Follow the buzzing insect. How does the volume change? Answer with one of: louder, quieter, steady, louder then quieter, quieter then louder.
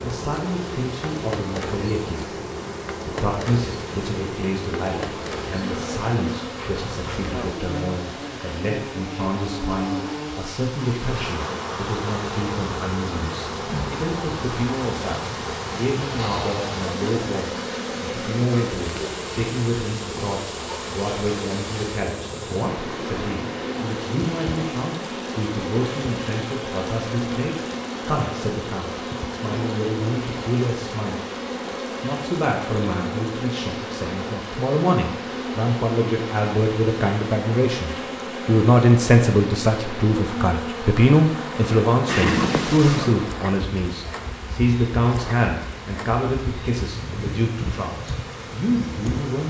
steady.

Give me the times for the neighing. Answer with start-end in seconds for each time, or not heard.
42.0-43.1.